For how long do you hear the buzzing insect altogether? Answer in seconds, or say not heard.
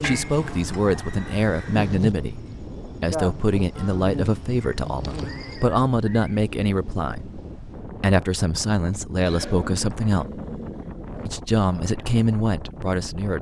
6 s.